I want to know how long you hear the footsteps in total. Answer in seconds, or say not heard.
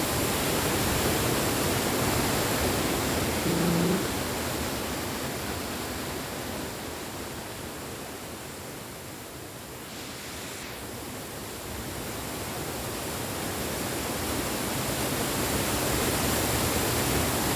not heard.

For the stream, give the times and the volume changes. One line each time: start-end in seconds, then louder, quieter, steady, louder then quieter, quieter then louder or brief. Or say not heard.
0.0-17.5 quieter then louder.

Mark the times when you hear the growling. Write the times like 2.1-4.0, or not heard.
3.5-4.1.